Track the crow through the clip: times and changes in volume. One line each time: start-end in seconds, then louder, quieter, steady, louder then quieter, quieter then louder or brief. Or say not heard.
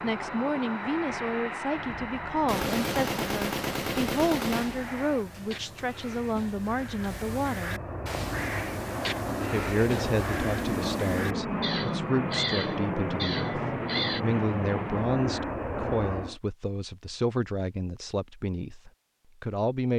4.5-14.2 louder.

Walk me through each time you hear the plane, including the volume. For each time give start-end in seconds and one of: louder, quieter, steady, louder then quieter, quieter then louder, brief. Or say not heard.
0.0-16.4 quieter then louder.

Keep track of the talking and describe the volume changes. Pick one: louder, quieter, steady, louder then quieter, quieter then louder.
steady.